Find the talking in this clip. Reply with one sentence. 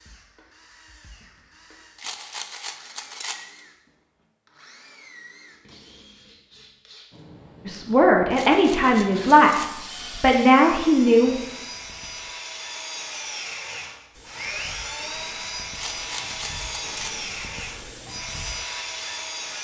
The talking can be heard from 7.7 to 11.4 s.